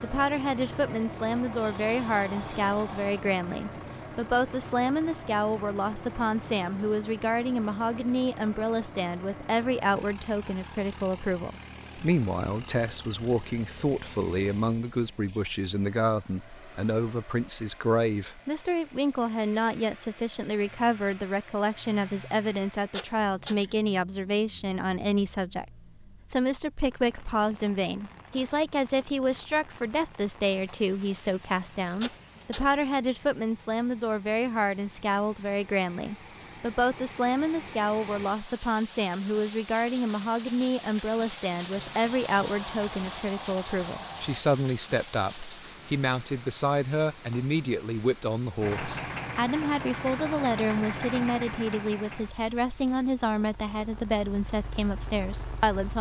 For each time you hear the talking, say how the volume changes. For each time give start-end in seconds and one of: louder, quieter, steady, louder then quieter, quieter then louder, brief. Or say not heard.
0.0-55.9 steady.